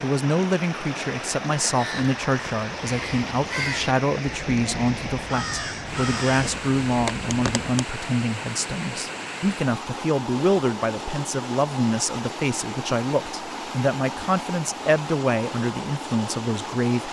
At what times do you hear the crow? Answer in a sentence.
You can hear the crow from 1.6 to 8.0 s.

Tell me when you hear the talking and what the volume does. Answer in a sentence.
The talking can be heard from 0.0 to 17.0 s, at a steady volume.